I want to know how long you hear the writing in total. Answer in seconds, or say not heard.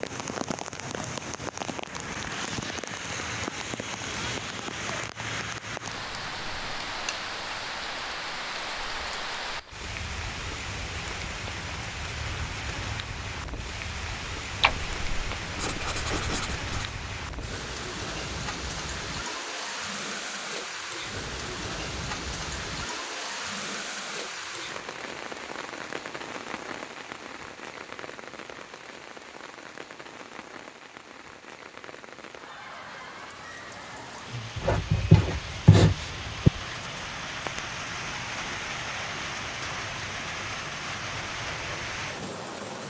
4 s.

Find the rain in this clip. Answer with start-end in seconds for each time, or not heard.
0.0-42.8.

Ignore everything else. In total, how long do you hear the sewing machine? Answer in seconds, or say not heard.
not heard.